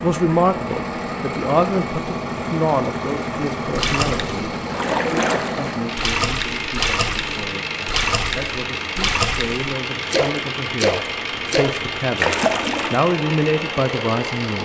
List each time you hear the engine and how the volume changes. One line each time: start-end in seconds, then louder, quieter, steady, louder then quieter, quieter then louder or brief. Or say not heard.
0.0-14.5 steady.